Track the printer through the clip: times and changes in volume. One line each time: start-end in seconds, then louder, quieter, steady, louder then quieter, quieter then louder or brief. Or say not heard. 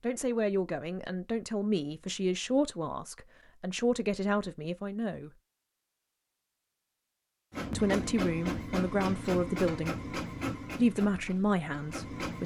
7.5-12.4 quieter.